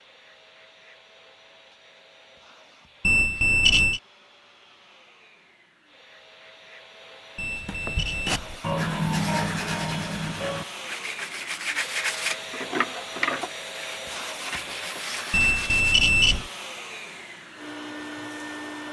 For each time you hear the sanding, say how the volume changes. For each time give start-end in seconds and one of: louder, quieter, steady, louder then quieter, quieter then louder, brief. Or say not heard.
7.4-15.9 quieter.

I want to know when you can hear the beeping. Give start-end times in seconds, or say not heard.
3.0-4.0, 7.3-8.6, 15.3-16.5.